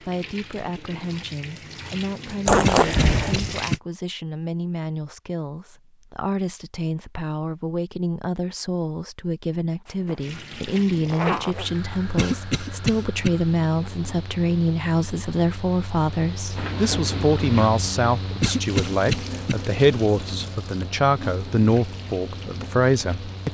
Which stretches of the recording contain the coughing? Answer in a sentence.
You can hear the coughing from 2.6 to 3.8 s, from 12.2 to 13.3 s and from 18.4 to 19.6 s.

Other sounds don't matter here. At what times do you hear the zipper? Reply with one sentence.
The zipper can be heard from 2.5 to 3.5 s, from 9.8 to 11.7 s and from 16.6 to 17.7 s.